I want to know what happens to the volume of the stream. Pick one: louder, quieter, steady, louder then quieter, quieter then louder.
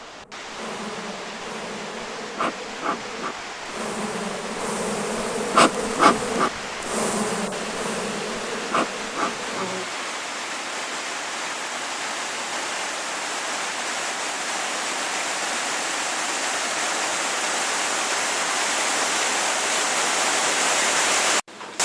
louder.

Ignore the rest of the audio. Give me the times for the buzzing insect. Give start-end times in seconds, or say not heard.
0.0-9.9.